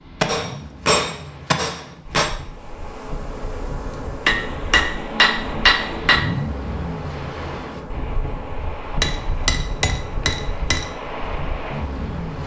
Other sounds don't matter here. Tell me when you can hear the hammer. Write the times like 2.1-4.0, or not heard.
0.2-2.3, 4.2-6.2, 9.0-10.9.